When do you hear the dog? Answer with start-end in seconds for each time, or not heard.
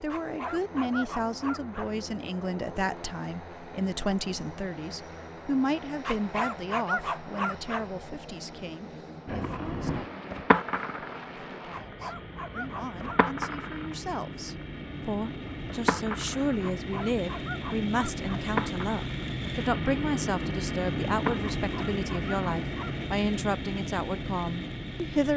0.1-1.9, 6.0-7.8, 11.7-13.2, 16.6-18.4, 21.6-22.9.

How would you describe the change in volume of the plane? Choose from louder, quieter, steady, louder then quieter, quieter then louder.
louder.